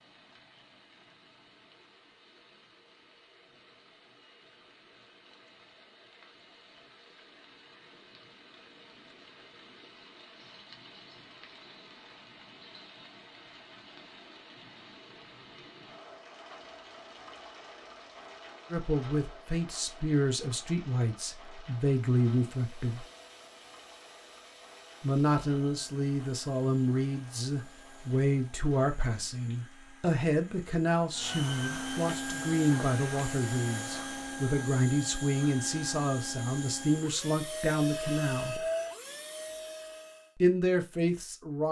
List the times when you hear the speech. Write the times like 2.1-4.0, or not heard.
18.7-23.1, 25.0-38.6, 40.4-41.6.